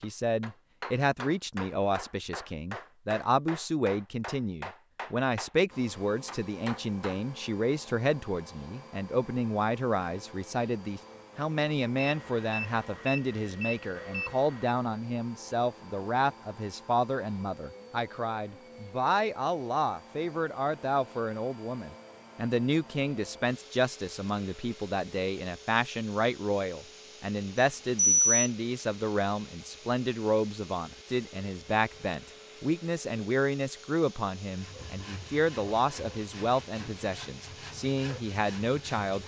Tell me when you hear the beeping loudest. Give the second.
28 s.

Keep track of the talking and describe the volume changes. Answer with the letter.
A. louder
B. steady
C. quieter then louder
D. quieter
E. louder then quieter
B.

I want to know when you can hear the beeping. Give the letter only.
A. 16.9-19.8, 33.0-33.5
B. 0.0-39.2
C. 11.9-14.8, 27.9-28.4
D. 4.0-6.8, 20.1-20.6
C.